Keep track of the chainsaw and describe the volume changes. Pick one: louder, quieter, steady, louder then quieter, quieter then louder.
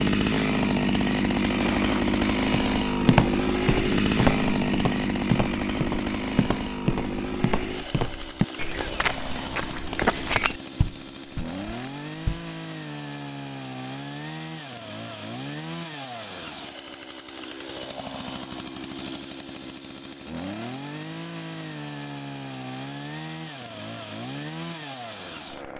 quieter.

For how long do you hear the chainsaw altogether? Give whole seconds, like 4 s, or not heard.
26 s.